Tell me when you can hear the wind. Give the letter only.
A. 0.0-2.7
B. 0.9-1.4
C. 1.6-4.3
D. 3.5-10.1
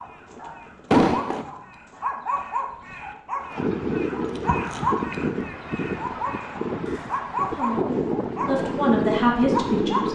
D.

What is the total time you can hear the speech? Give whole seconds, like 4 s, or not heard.
3 s.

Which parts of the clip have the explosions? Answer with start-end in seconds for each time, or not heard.
0.9-1.4.